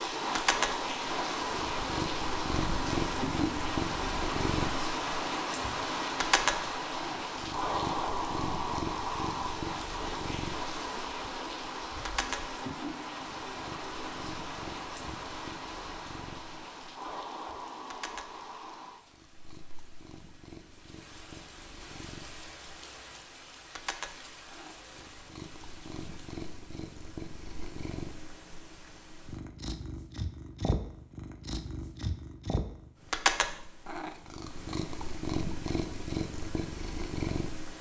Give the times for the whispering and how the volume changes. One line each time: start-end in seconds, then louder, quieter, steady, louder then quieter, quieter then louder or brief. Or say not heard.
not heard.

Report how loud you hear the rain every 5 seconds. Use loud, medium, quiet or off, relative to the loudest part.
loud, loud, medium, medium, quiet, quiet, off, off.